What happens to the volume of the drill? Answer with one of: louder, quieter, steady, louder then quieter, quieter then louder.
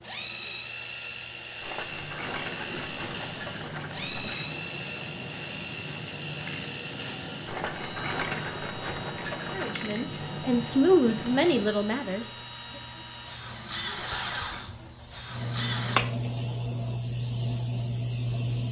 steady.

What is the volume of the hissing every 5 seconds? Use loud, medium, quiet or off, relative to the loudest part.
quiet, medium, medium, loud.